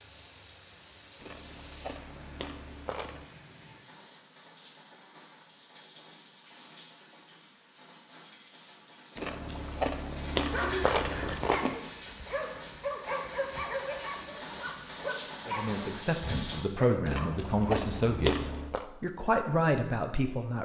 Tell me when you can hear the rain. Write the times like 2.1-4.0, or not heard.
0.0-16.6.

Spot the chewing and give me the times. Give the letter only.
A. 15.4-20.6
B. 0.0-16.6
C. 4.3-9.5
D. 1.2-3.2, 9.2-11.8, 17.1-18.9
D.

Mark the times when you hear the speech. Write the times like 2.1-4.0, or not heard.
15.4-20.6.